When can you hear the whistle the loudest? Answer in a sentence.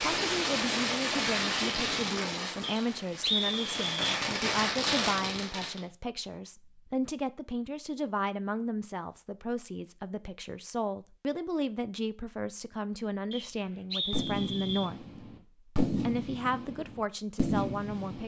The volume of the whistle peaks at 3 seconds.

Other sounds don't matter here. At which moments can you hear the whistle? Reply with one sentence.
The whistle can be heard from 2.6 to 4.2 s and from 13.3 to 14.9 s.